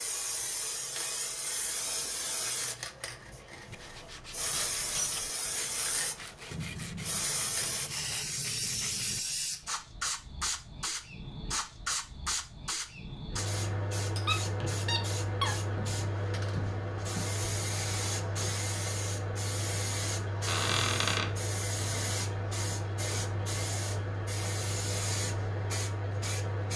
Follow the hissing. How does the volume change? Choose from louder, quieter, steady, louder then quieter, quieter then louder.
steady.